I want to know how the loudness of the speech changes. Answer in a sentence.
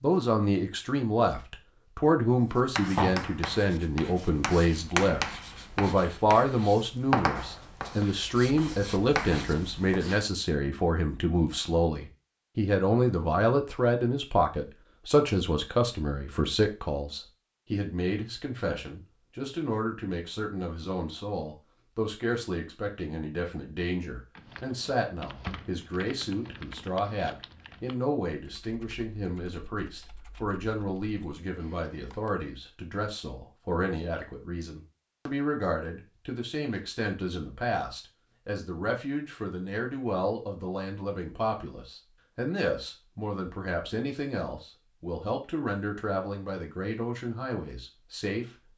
The volume of the speech goes down.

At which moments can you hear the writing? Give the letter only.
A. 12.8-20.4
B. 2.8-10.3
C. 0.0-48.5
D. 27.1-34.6
B.